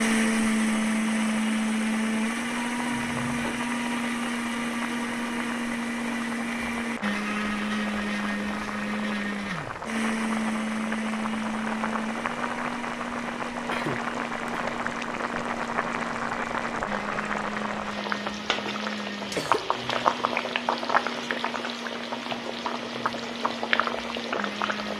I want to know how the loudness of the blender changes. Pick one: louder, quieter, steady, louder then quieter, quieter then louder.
quieter.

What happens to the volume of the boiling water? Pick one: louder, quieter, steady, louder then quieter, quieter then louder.
louder.